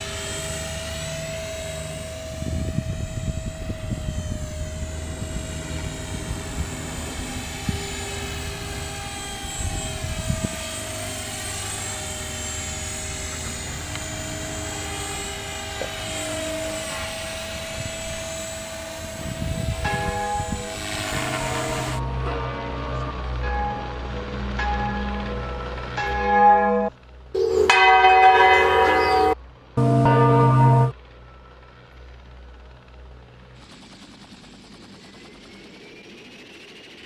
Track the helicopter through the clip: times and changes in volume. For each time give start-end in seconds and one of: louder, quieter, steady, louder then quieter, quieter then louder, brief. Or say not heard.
0.0-37.0 quieter.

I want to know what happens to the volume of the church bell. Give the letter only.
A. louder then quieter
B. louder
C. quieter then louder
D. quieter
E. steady
B.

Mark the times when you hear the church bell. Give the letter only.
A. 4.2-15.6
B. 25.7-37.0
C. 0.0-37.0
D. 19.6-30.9
D.